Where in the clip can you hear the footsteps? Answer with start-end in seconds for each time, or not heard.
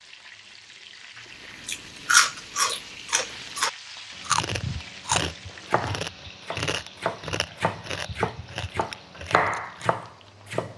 not heard.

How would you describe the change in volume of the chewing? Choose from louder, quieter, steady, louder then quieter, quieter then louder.
quieter.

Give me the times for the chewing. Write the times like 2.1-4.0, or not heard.
1.6-9.9.